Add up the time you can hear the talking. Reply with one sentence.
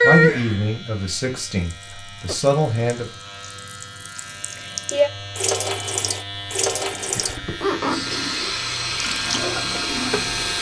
You can hear the talking for 3 seconds altogether.